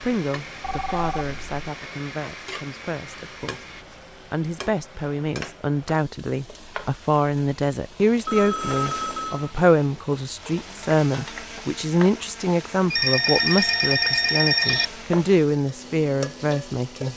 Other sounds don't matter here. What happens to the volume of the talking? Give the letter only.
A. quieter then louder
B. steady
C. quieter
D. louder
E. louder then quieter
D.